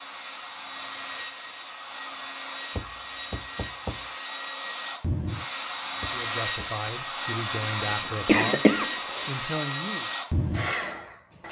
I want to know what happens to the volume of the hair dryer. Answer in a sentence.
The loudness of the hair dryer goes up.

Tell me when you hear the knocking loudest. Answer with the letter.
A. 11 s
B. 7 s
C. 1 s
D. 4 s
D.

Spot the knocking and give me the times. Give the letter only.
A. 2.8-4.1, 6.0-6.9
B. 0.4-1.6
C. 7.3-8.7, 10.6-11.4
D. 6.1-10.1
A.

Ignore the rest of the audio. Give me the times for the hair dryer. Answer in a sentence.
You can hear the hair dryer from 0.0 to 11.4 s.